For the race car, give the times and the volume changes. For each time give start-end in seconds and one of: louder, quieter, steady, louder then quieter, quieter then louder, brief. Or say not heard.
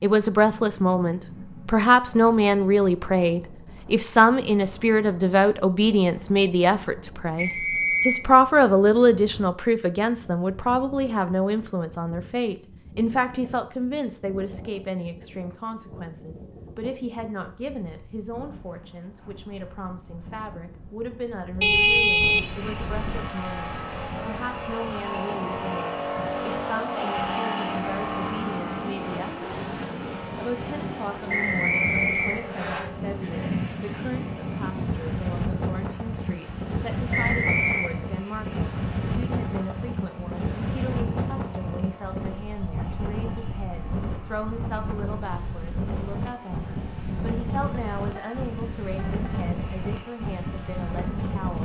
22.1-51.5 quieter.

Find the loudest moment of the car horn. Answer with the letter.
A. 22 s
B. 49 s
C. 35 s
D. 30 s
A.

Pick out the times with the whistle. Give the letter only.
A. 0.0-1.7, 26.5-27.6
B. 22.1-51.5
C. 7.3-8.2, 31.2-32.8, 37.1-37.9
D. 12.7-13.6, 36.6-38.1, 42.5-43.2
C.